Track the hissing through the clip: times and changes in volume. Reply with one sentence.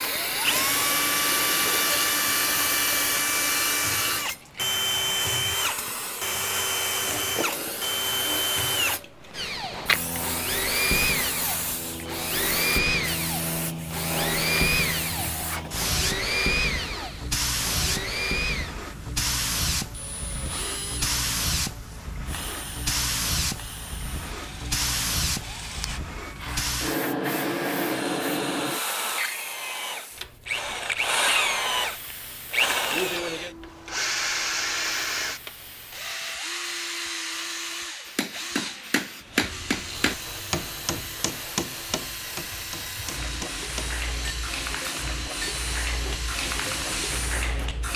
You can hear the hissing from 0.0 to 47.9 s, getting quieter then louder.